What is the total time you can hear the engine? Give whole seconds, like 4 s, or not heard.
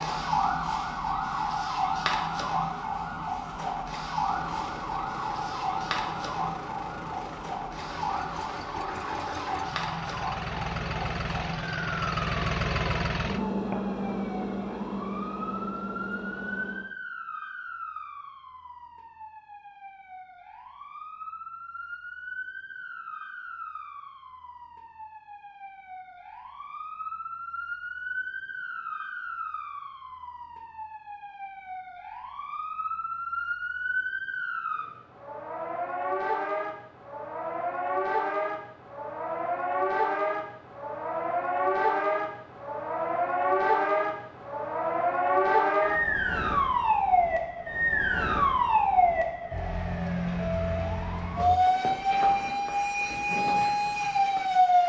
13 s.